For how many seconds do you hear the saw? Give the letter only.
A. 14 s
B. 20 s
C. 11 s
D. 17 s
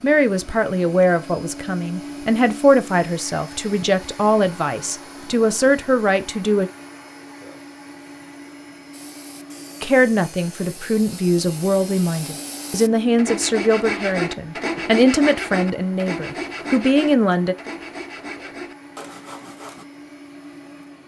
C.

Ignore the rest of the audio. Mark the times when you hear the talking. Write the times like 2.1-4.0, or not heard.
0.0-6.7, 9.8-17.6.